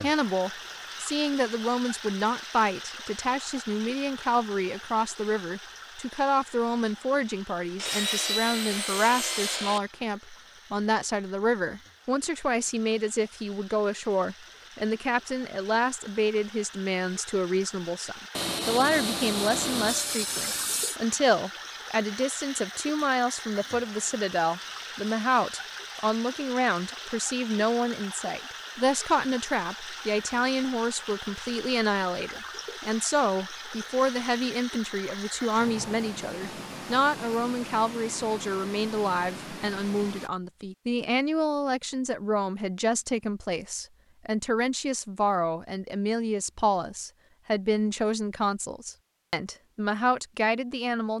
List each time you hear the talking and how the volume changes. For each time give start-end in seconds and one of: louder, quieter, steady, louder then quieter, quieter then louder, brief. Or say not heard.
0.0-51.1 steady.